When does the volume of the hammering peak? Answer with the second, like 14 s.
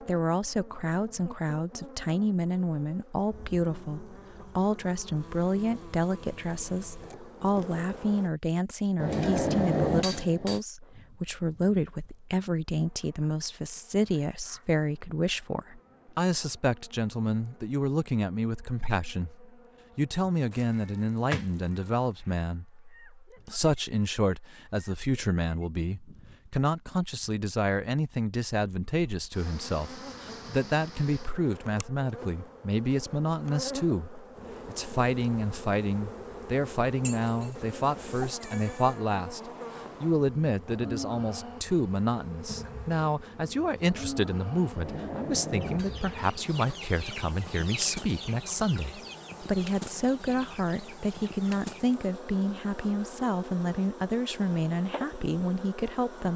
10 s.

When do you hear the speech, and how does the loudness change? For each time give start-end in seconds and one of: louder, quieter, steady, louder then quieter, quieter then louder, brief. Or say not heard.
0.0-56.3 steady.